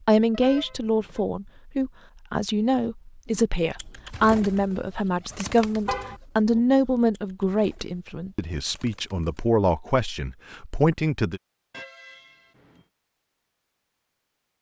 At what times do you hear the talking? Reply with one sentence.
The talking can be heard from 0.1 to 11.4 s.